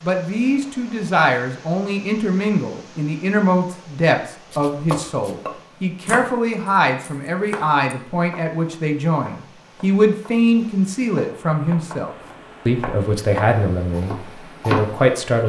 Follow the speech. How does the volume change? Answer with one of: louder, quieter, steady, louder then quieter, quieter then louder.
steady.